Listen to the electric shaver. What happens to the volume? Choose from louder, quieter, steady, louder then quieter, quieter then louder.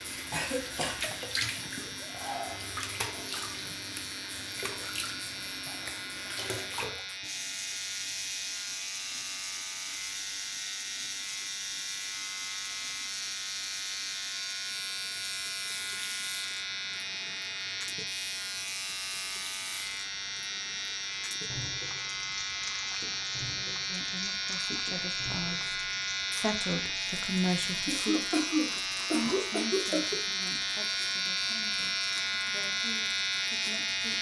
louder.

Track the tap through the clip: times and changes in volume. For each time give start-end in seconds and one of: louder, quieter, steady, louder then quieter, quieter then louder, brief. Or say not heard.
0.0-34.1 quieter.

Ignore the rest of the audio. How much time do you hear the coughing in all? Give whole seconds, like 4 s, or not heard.
3 s.